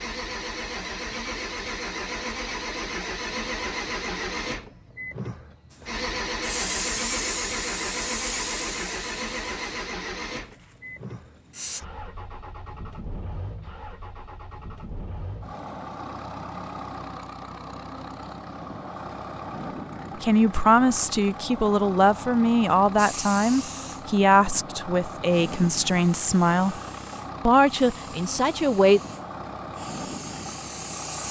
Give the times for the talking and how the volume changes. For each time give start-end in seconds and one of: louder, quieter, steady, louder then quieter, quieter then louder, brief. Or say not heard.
20.2-26.8 steady
27.4-29.0 brief.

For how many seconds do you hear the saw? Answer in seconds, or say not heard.
not heard.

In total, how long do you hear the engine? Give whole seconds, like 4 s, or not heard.
31 s.